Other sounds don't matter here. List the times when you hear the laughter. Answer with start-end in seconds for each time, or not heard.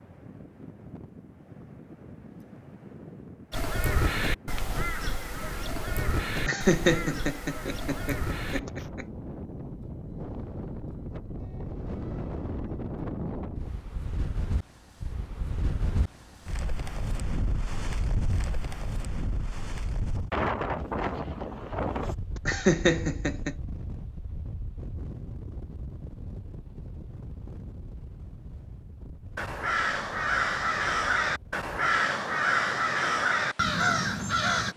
6.3-9.1, 22.4-23.6.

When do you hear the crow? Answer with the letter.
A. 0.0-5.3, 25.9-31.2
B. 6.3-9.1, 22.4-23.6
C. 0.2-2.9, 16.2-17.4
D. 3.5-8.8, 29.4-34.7
D.